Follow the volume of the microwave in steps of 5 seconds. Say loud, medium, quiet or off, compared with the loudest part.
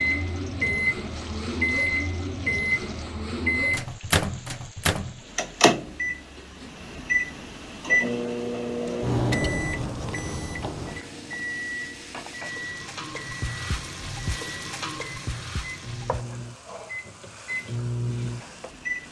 loud, loud, medium, medium.